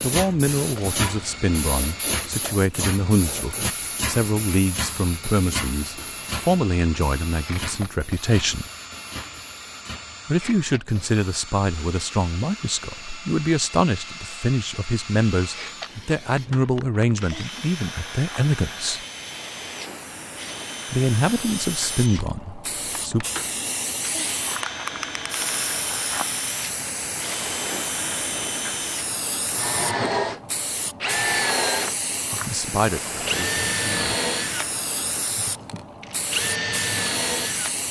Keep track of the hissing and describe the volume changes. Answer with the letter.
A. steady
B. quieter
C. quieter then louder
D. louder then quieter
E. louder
C.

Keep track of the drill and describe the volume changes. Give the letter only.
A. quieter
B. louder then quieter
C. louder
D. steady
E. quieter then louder
C.